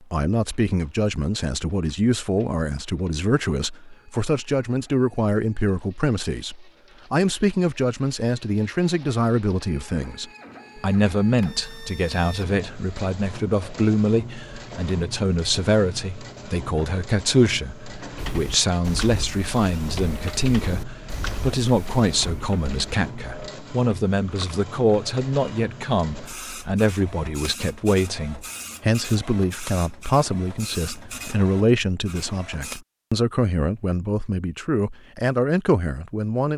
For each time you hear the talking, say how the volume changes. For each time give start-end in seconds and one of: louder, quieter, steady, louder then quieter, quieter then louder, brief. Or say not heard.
0.1-36.5 steady.